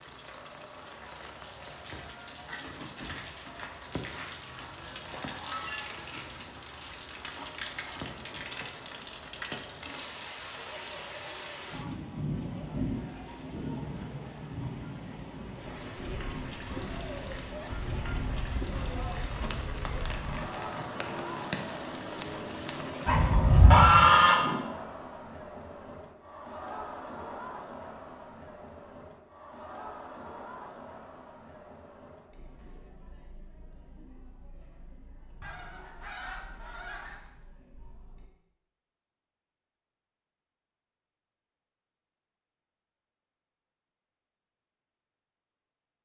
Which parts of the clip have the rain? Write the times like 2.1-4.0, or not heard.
0.0-23.4.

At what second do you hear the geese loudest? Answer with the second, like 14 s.
24 s.